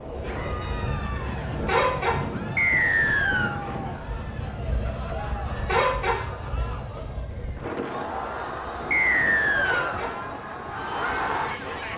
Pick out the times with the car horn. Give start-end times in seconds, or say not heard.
0.1-2.1, 4.2-6.2, 8.1-10.1.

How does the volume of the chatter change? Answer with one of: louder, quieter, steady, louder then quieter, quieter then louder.
louder.